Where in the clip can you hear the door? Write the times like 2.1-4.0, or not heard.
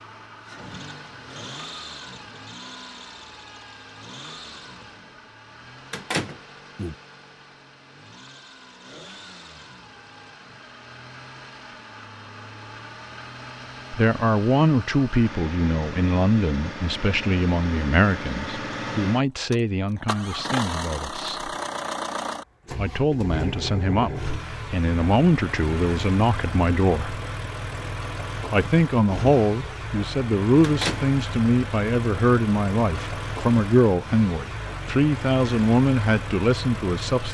5.9-7.0, 30.6-31.1.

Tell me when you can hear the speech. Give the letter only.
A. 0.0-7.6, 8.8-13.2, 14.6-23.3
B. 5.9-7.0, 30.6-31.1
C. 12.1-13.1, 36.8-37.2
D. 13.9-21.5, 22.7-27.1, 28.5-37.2
D.